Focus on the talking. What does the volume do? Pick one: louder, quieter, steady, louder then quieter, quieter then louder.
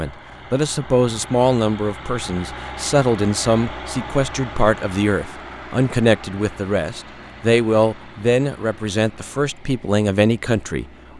steady.